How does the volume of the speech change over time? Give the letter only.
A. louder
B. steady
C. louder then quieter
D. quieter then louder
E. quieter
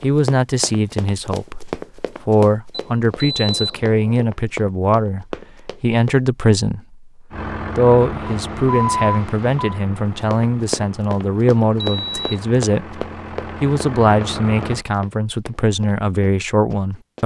B.